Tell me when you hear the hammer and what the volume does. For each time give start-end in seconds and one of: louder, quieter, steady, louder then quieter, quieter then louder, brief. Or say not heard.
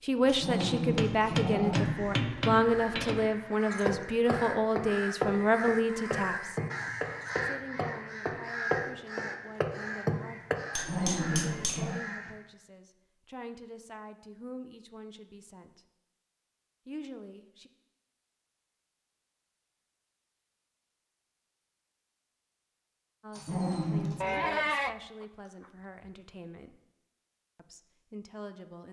0.2-11.9 steady.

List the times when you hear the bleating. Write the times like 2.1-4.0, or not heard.
24.2-25.2.